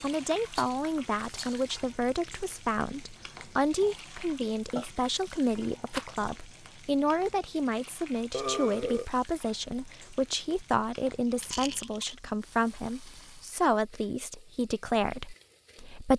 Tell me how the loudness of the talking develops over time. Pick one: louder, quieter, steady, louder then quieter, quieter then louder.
steady.